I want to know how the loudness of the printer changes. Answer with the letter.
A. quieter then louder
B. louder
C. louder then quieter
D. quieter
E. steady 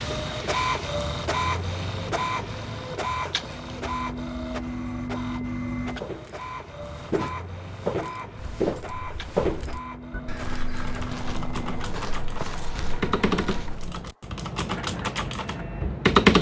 D.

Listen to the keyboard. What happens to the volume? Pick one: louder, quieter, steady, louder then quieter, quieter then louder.
louder.